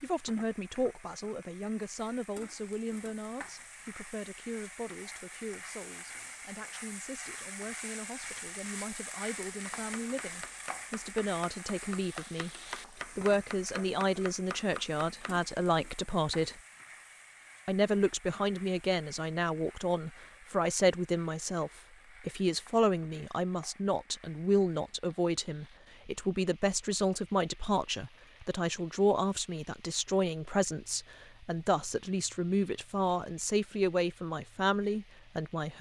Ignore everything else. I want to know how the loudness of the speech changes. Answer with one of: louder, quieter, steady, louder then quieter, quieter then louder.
louder.